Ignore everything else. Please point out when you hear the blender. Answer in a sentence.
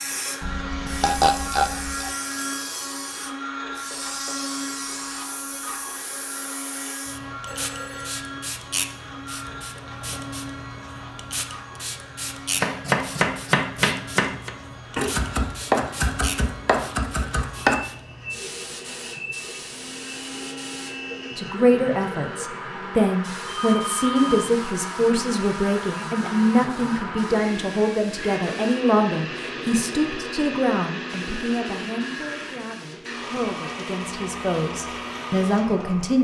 You can hear the blender from 0.0 to 36.1 s.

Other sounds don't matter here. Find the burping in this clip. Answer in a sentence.
The burping can be heard from 0.4 to 2.1 s.